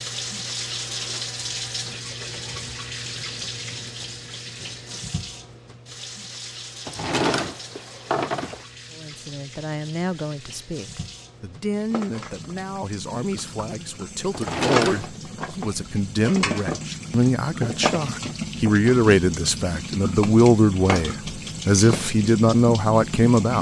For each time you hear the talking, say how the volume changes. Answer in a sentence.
You can hear the talking from 8.9 to 23.5 s, getting louder.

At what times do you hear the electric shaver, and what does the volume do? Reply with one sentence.
You can't hear the electric shaver here.